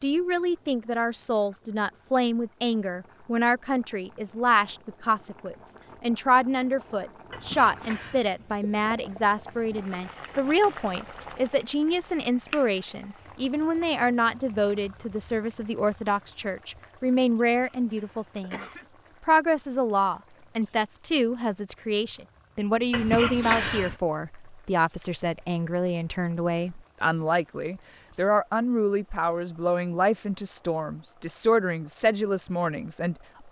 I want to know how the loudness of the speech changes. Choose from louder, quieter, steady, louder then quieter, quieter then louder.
steady.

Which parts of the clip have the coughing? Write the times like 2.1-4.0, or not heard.
7.3-8.2, 17.6-18.9, 22.9-23.9.